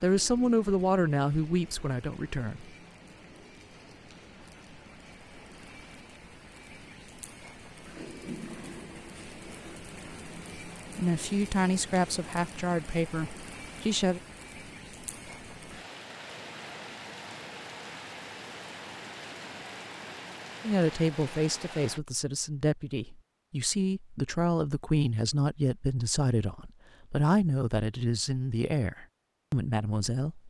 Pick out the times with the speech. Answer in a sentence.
The speech can be heard from 0.0 to 2.6 s, from 10.9 to 14.2 s and from 20.6 to 30.4 s.